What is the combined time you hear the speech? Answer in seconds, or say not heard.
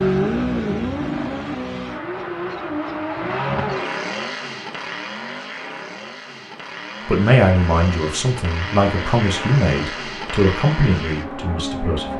5 s.